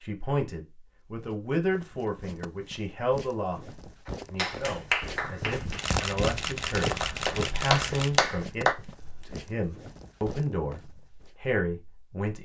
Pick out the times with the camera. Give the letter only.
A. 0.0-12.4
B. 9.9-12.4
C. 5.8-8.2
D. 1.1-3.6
C.